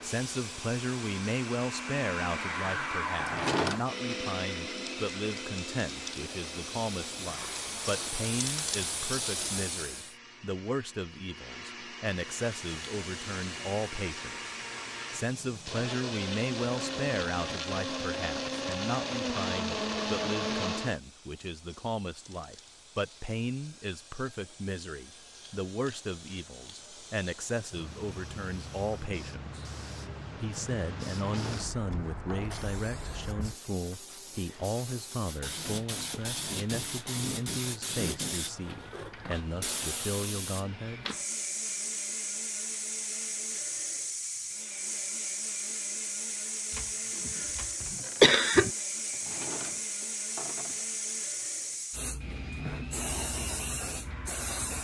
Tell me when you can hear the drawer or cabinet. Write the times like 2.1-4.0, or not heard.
3.1-3.9, 31.2-32.8, 49.1-50.9.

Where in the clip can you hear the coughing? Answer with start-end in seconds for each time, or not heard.
46.8-48.7.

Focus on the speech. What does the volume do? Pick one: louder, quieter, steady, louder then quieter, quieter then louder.
steady.